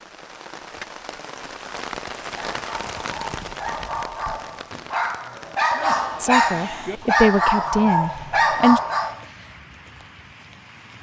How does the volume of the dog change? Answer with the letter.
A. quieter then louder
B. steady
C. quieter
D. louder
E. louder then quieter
D.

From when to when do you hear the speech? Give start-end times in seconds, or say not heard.
6.2-8.8.